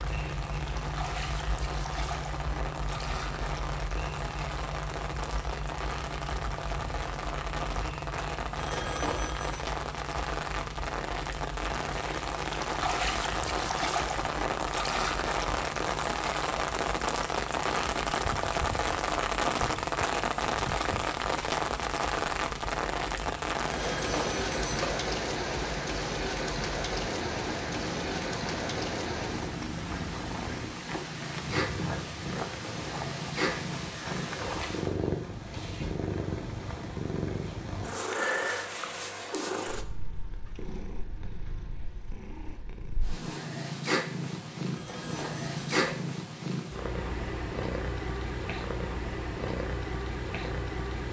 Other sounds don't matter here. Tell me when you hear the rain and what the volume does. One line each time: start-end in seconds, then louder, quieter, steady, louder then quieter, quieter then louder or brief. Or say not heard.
0.0-35.0 louder then quieter.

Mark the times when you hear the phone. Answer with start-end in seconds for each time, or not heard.
8.6-9.6, 23.8-25.0, 44.8-46.0.